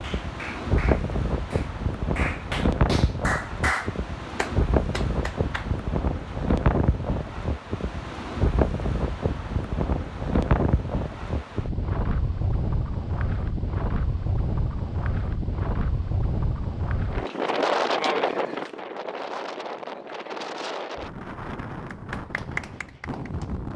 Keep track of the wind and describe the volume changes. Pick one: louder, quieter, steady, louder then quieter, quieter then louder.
quieter.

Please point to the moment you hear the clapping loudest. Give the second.
4 s.